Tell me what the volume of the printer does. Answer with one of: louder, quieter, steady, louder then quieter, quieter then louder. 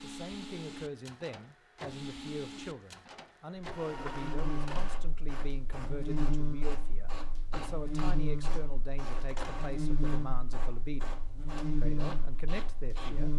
steady.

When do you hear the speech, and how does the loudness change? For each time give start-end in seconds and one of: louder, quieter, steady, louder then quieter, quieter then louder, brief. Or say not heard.
0.0-11.2 steady
11.8-13.3 brief.